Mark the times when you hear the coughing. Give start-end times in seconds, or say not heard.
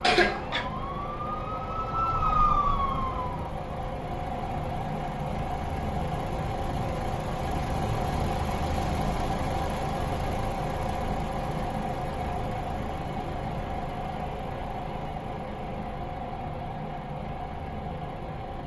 0.0-0.7.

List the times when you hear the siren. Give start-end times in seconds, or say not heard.
0.1-3.5.